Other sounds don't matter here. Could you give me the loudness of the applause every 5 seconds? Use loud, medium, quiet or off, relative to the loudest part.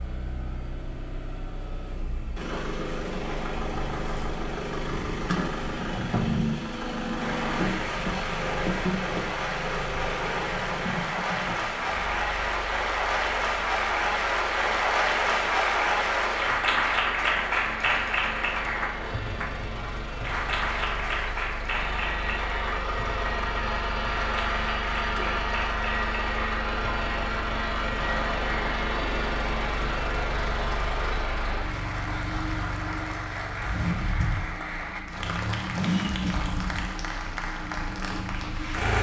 off, medium, loud, loud, medium, medium, medium, medium.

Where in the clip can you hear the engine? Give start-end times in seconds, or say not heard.
0.0-38.9.